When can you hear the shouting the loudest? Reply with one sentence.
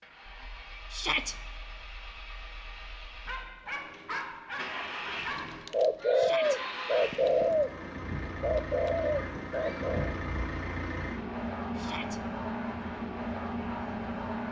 The volume of the shouting peaks at 1 second.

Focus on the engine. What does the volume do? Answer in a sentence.
The loudness of the engine goes up.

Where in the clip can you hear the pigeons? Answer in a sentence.
The pigeons can be heard from 4.7 to 7.7 s and from 8.4 to 10.2 s.